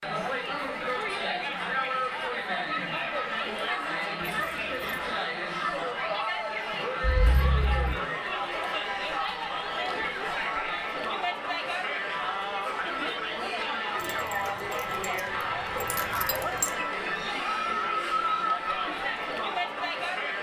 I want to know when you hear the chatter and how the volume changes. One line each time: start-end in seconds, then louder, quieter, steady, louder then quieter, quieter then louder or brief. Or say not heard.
0.0-20.3 steady.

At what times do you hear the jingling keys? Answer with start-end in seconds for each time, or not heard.
4.3-4.8, 7.0-8.0, 14.0-15.2, 15.8-16.7.